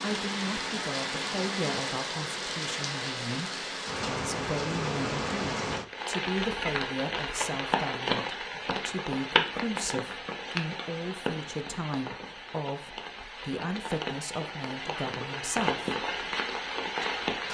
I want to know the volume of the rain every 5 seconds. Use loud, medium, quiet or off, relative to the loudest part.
loud, loud, medium, loud.